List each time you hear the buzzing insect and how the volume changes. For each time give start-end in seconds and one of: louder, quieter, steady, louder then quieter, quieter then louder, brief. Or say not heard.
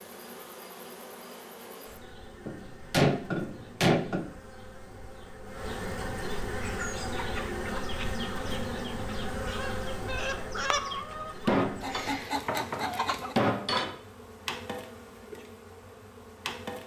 0.0-16.8 louder then quieter.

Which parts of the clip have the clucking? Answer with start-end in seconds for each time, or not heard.
6.5-13.3.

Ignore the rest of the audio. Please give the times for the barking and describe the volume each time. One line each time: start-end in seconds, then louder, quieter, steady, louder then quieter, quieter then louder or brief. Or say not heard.
not heard.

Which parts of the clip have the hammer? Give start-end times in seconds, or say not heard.
2.5-4.3, 11.4-13.9.